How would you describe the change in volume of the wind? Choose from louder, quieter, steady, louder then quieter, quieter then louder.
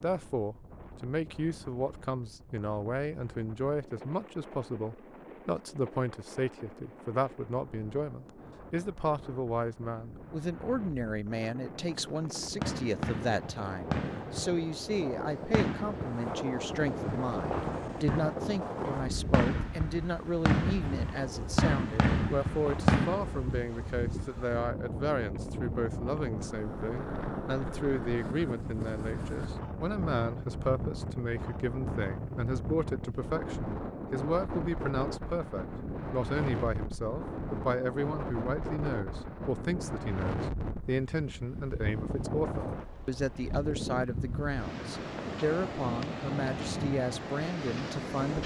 louder.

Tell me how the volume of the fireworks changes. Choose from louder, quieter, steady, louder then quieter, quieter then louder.
louder.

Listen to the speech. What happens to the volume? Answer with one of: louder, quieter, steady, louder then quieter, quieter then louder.
steady.